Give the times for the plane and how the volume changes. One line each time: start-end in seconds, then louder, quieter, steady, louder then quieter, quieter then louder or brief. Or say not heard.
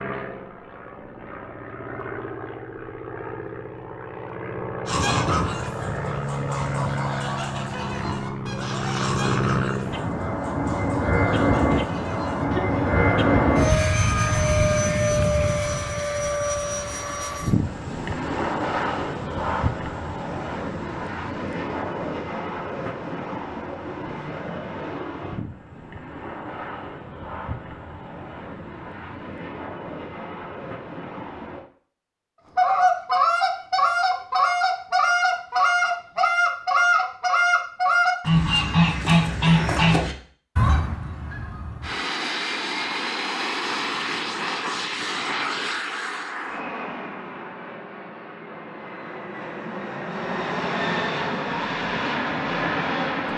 0.0-31.6 louder then quieter
41.8-53.3 quieter then louder.